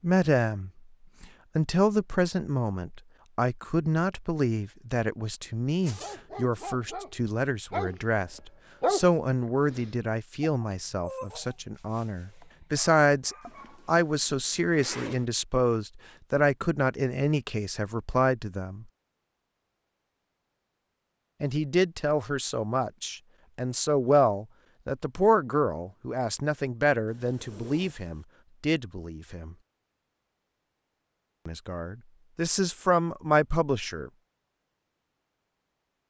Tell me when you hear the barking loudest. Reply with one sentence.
The volume of the barking peaks at 9 seconds.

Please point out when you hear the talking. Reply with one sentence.
The talking can be heard from 0.0 to 18.9 s, from 21.4 to 29.6 s and from 31.4 to 34.1 s.